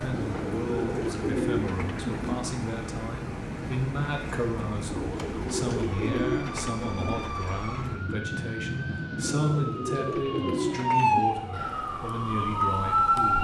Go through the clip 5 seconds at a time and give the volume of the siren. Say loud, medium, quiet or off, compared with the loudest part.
quiet, quiet, loud.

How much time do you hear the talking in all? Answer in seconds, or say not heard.
13 s.